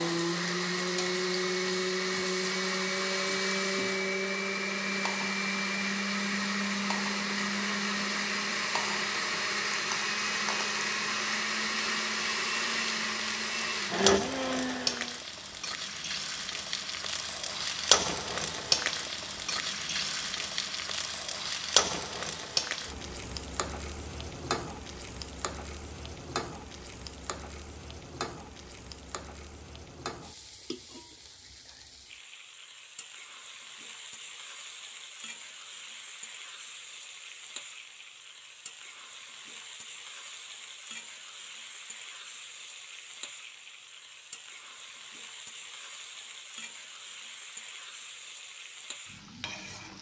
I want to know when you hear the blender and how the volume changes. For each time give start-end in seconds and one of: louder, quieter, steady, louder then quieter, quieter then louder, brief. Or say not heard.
0.0-15.2 steady.